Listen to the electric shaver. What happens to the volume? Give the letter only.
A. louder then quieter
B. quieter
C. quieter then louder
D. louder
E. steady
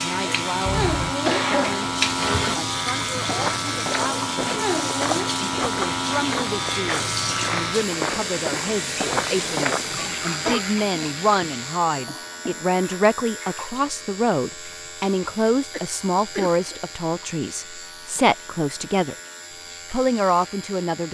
B.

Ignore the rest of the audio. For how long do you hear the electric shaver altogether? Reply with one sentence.
The electric shaver can be heard for 21 seconds in total.